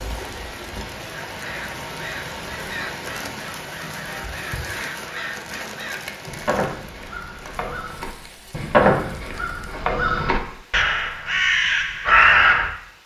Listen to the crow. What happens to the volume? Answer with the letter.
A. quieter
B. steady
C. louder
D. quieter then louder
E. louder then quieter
C.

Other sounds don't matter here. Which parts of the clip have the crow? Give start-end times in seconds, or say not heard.
1.3-12.7.